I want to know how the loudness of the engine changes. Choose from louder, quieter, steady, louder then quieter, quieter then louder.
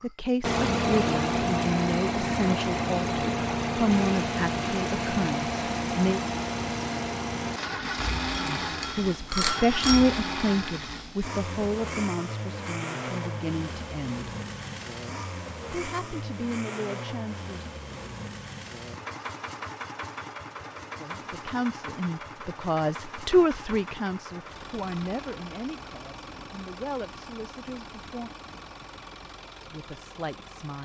quieter.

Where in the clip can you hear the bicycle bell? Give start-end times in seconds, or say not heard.
8.3-10.1.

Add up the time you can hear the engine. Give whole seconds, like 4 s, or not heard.
30 s.